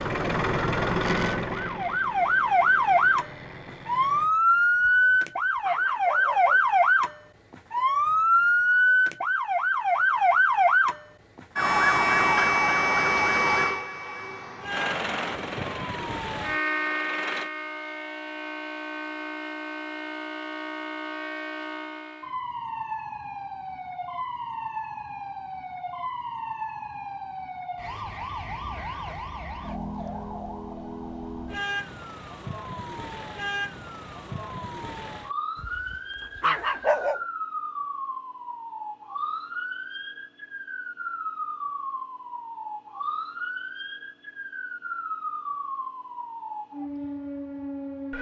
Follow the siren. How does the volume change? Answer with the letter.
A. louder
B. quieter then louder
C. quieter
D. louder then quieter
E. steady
C.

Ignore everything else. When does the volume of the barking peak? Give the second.
37 s.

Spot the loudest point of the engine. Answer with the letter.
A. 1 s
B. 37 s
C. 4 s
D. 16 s
A.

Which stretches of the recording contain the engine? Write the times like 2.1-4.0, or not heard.
0.0-4.3, 14.7-17.5.